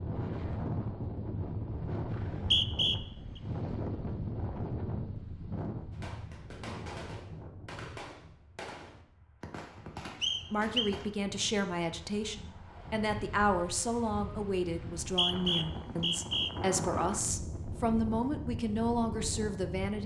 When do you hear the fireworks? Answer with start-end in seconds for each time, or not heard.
5.9-11.1.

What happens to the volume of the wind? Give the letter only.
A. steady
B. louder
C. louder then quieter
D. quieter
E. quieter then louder
E.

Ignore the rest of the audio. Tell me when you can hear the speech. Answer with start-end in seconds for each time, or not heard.
10.5-20.0.